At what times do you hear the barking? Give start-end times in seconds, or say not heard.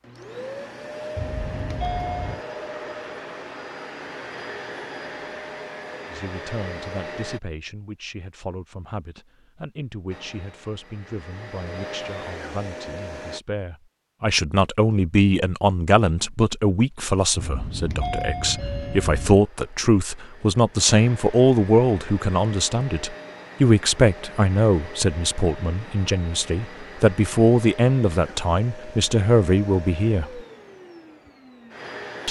not heard.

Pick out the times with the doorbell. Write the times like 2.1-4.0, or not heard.
1.1-2.4, 17.4-19.4.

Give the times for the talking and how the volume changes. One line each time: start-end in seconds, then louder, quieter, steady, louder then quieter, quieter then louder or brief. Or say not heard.
6.1-30.4 louder.